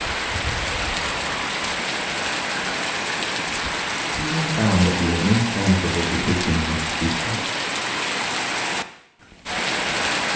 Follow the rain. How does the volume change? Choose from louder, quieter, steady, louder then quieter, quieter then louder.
steady.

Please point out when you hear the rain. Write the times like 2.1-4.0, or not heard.
0.0-10.3.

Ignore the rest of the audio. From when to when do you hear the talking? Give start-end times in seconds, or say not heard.
4.0-7.4.